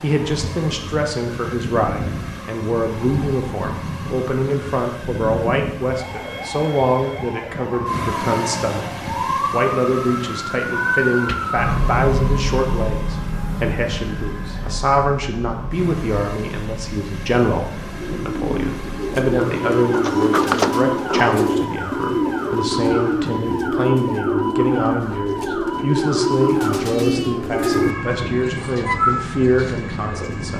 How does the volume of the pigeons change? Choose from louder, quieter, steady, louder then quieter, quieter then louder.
steady.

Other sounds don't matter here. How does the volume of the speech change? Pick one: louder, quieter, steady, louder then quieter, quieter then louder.
steady.